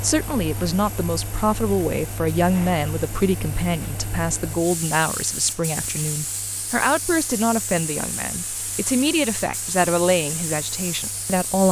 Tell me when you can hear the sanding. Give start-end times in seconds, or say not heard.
not heard.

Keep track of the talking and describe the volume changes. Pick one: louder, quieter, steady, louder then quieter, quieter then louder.
steady.